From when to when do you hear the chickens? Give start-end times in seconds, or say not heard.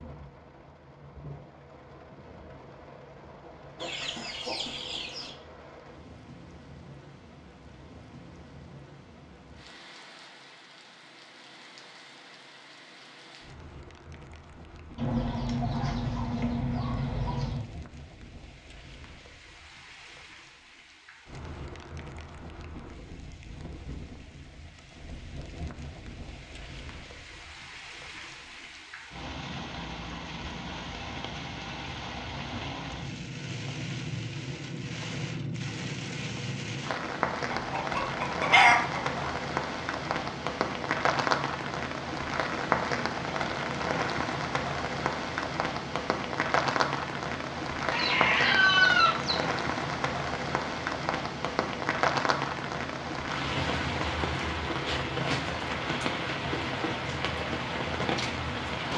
3.8-5.3, 14.9-17.7, 37.5-39.2, 47.9-49.5.